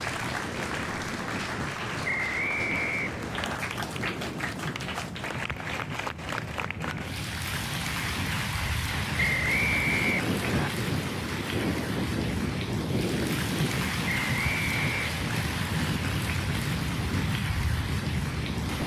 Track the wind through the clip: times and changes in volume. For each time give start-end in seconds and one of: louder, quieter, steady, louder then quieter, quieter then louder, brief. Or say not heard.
0.0-18.8 louder.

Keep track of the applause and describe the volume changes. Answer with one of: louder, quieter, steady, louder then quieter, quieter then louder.
steady.